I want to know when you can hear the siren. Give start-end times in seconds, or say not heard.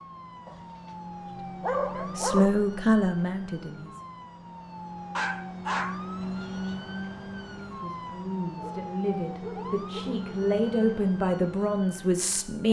0.0-12.6.